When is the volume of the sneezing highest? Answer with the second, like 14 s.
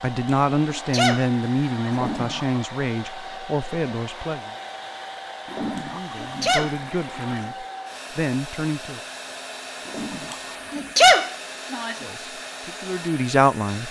11 s.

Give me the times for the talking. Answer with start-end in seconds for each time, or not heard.
0.0-4.5, 5.9-9.0, 12.0-13.8.